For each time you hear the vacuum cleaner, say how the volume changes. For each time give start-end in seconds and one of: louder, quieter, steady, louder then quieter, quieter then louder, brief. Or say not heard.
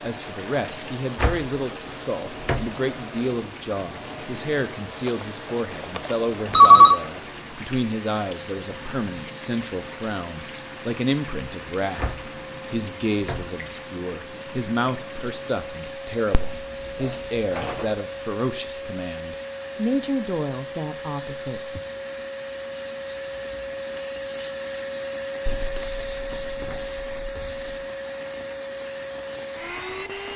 0.0-30.3 louder.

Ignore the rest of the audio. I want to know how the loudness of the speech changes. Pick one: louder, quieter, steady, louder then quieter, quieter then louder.
steady.